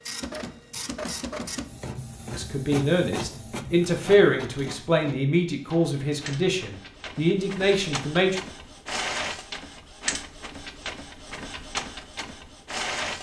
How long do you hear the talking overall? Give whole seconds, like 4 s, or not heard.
6 s.